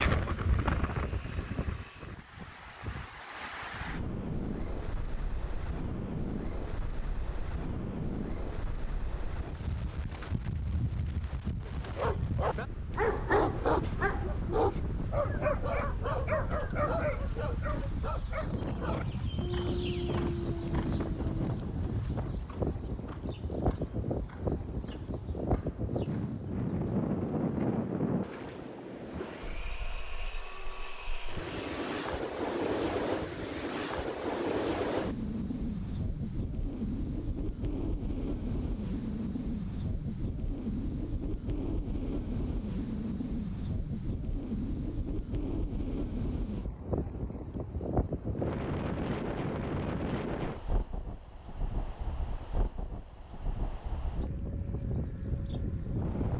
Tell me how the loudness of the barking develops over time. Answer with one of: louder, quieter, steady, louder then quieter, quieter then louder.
quieter.